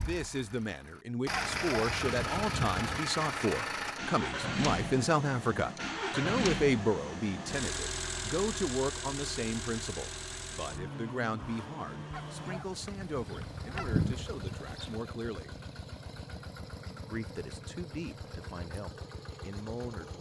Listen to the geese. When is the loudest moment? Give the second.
14 s.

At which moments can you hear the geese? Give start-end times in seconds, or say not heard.
1.3-3.0, 12.1-14.9.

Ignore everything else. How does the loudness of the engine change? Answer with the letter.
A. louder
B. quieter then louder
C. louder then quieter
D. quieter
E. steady
D.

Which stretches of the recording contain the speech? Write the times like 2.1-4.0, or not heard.
0.0-15.5, 17.1-20.1.